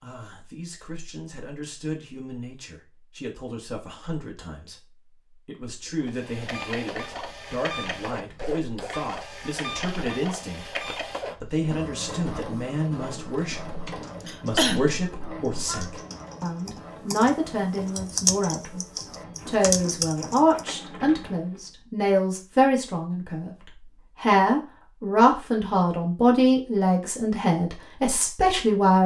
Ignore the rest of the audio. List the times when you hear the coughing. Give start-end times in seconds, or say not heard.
14.2-15.8.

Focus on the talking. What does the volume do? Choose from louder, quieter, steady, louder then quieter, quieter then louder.
louder.